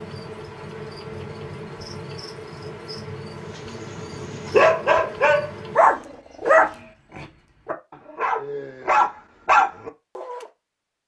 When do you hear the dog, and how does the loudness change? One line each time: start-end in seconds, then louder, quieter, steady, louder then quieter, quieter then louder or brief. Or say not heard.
3.7-10.4 quieter then louder.